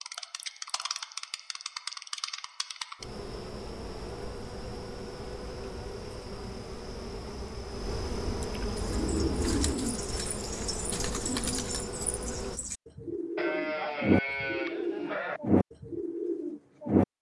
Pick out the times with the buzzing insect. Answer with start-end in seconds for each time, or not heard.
0.0-12.6.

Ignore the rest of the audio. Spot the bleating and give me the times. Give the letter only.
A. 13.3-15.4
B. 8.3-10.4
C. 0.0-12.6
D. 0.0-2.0
A.